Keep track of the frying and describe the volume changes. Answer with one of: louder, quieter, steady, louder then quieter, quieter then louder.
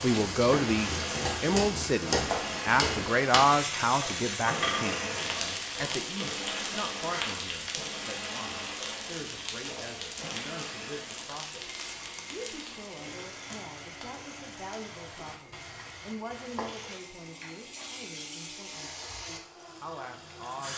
quieter.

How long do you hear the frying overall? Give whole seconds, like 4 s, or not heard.
21 s.